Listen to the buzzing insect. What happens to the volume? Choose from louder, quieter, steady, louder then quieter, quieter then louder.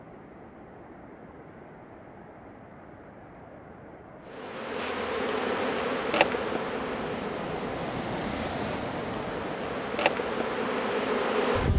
quieter then louder.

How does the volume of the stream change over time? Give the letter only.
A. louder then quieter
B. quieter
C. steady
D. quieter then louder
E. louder
E.